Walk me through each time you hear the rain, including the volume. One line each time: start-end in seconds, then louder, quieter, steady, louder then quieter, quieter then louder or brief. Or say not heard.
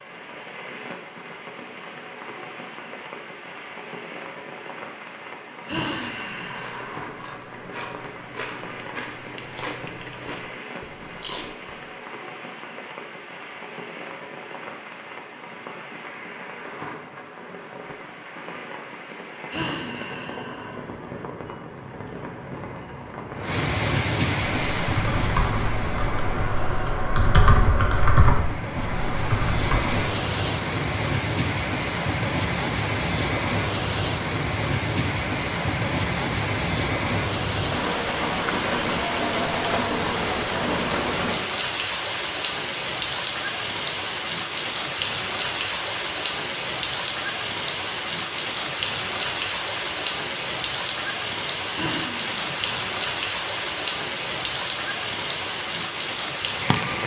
0.0-57.0 louder.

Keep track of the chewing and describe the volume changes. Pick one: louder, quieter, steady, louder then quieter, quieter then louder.
louder.